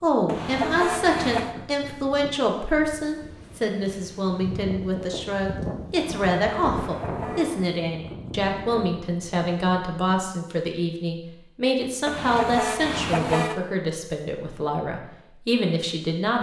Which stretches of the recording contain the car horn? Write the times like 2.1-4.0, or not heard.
0.2-1.6, 6.0-7.7, 12.1-13.6.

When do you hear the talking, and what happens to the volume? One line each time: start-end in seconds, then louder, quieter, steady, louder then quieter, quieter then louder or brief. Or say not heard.
0.0-16.3 steady.